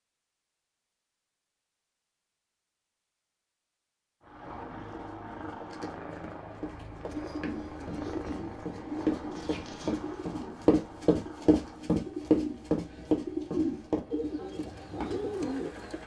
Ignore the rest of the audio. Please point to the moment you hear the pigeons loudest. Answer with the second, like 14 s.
14 s.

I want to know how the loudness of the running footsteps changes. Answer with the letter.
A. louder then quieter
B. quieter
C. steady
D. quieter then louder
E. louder
A.